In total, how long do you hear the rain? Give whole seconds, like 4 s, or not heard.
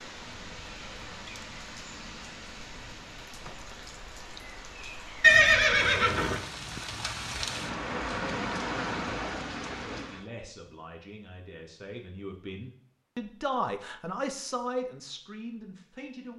10 s.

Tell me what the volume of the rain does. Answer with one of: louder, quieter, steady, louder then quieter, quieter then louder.
louder.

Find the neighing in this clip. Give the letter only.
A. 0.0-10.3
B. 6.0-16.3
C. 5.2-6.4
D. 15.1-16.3
C.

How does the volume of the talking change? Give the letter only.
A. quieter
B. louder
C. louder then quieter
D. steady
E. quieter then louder
C.